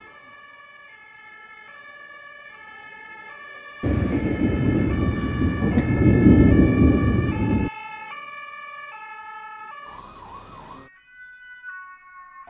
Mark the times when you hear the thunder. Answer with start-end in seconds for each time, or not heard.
3.8-7.7.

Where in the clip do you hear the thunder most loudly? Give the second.
6 s.